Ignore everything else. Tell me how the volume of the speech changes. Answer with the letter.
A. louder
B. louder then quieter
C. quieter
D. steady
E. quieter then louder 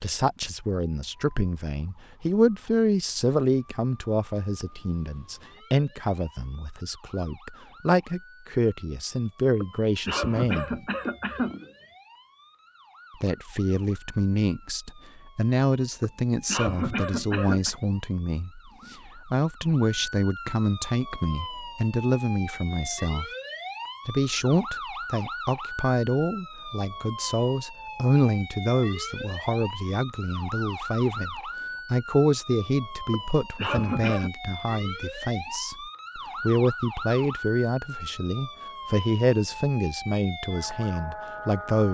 D.